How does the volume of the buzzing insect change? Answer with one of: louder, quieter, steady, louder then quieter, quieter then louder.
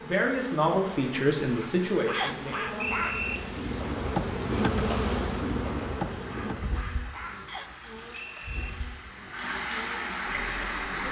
louder then quieter.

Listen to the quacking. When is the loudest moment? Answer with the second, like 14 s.
3 s.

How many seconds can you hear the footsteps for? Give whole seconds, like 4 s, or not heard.
not heard.